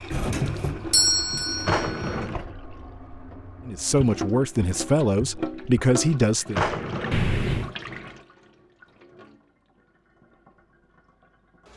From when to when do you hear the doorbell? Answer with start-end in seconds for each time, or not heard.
0.1-2.2, 7.1-7.8.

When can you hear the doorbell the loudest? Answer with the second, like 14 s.
1 s.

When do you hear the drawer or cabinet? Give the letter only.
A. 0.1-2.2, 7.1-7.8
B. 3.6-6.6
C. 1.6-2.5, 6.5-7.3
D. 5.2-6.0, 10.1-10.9
C.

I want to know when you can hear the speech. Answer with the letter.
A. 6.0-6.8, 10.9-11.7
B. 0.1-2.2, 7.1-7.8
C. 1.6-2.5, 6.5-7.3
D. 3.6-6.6
D.